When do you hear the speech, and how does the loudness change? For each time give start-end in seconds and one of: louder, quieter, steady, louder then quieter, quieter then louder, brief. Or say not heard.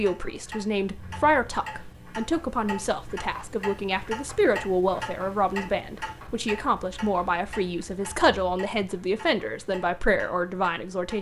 0.0-11.1 steady.